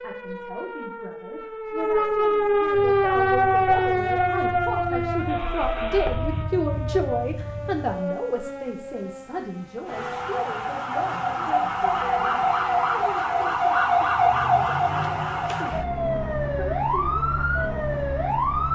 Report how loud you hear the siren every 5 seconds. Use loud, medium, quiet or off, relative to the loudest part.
loud, medium, loud, loud.